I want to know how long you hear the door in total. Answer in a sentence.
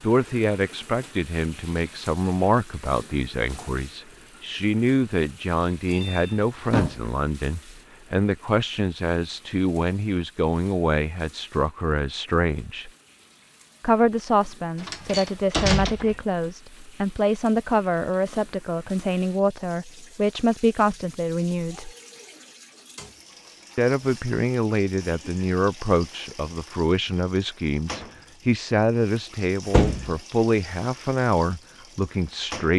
The door can be heard for 3 seconds in total.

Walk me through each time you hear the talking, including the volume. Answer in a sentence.
The talking can be heard from 0.0 to 12.9 s, at a steady volume; from 13.8 to 21.9 s, at a steady volume; and from 23.8 to 32.7 s, at a steady volume.